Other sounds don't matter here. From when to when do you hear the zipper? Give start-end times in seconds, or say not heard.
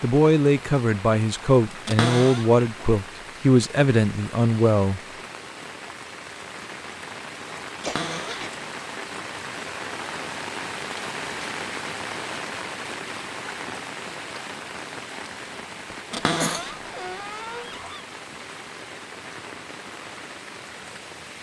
not heard.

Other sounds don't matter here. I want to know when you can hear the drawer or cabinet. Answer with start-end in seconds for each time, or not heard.
1.9-2.5, 7.8-8.4, 16.1-18.1.